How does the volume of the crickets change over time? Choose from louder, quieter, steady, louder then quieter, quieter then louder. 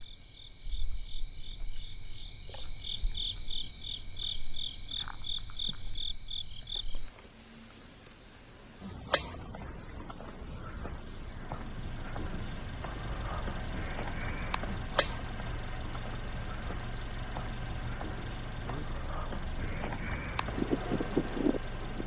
louder.